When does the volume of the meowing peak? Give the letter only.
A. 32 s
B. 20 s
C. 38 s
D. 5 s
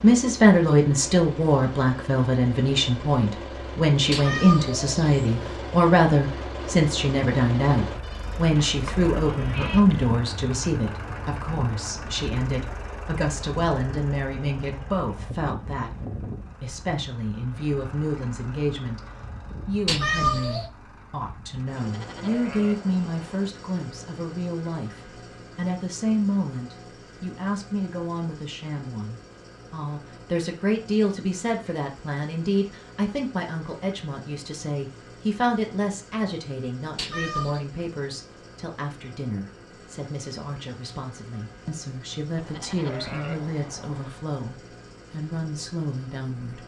B.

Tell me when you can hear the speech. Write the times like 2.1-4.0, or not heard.
0.0-15.9, 16.6-19.0, 19.6-46.6.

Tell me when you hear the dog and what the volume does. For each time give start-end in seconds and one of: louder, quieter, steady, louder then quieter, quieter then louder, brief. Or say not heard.
not heard.